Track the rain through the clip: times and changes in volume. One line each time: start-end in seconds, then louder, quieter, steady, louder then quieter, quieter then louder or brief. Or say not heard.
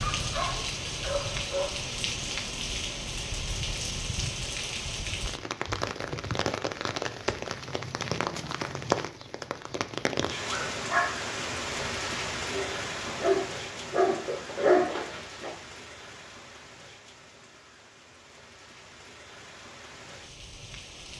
0.0-21.1 quieter.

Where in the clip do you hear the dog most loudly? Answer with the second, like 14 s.
15 s.